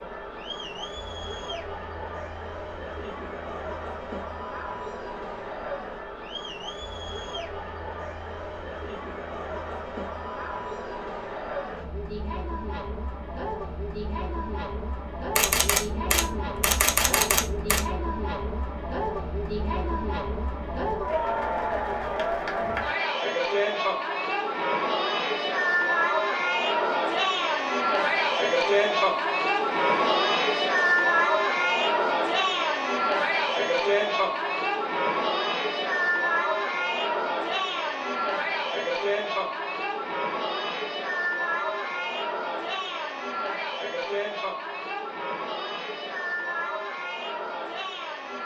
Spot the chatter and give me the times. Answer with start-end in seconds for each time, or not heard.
0.0-48.4.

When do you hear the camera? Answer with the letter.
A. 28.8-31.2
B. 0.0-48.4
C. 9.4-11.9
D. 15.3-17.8
D.